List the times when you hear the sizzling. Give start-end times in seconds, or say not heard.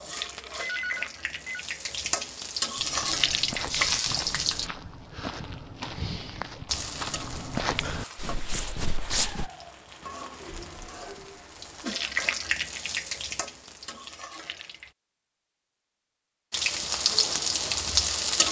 0.0-4.7, 6.7-14.9, 16.5-18.4.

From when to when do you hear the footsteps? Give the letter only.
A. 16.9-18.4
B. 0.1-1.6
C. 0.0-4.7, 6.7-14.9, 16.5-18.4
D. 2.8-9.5
D.